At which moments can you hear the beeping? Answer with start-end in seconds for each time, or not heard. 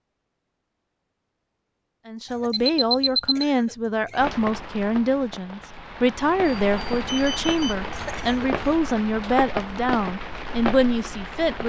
2.5-3.5, 6.5-7.8.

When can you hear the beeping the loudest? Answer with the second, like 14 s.
3 s.